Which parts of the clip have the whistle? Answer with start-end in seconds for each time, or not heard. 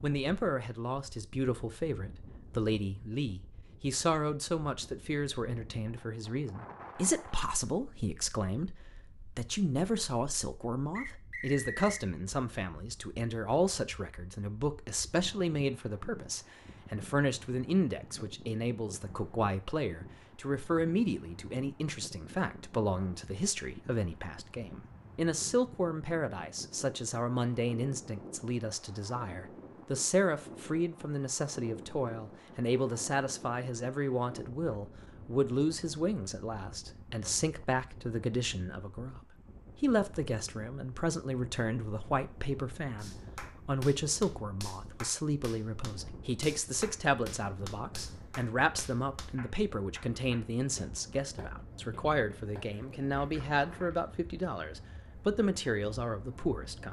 10.9-12.1.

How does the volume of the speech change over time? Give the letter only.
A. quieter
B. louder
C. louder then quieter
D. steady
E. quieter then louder
D.